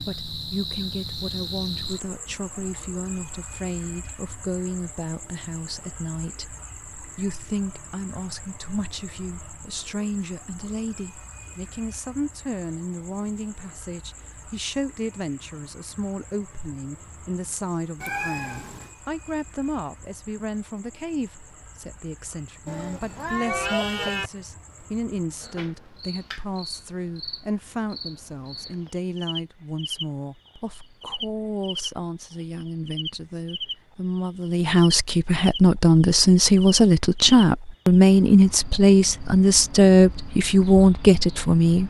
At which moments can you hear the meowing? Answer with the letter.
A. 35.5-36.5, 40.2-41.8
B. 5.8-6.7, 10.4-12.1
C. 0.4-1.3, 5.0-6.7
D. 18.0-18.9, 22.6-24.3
D.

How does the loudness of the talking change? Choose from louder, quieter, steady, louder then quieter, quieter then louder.
louder.